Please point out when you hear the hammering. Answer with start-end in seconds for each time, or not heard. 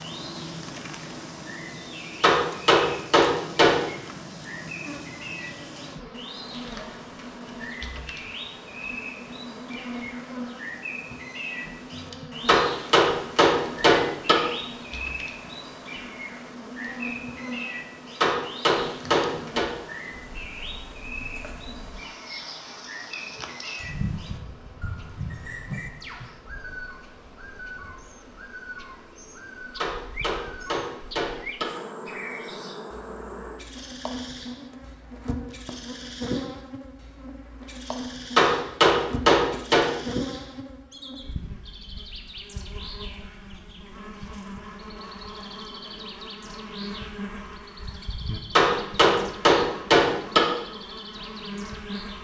2.2-3.8, 12.4-14.3, 18.2-19.6, 29.8-31.6, 38.4-39.9, 48.5-50.4.